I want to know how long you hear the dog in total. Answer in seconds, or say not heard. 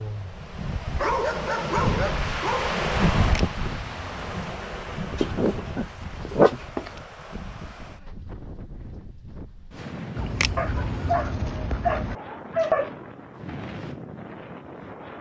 6 s.